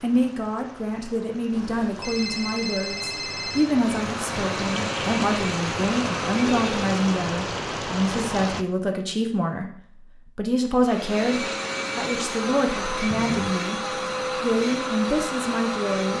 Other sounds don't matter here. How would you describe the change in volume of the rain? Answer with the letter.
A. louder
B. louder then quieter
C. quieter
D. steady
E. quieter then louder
A.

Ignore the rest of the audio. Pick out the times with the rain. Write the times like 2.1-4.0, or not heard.
0.0-8.7.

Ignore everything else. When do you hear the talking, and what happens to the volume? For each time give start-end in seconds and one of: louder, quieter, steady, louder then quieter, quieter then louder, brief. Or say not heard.
0.0-13.8 steady
14.4-16.1 brief.